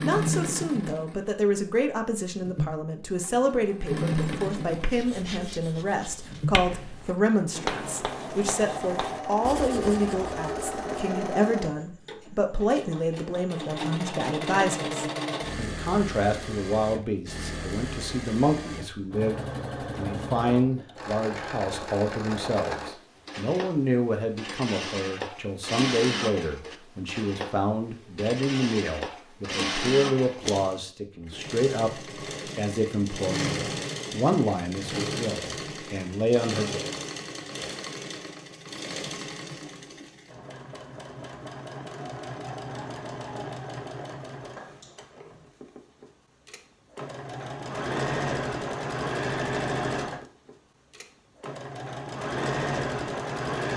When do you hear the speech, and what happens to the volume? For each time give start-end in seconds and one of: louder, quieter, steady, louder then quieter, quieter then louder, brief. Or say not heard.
0.0-36.9 steady.